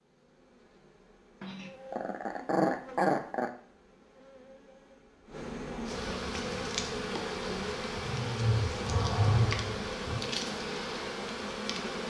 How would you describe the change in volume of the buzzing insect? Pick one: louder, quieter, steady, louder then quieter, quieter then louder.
louder.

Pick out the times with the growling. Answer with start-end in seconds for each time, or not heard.
1.4-3.5, 8.0-10.2.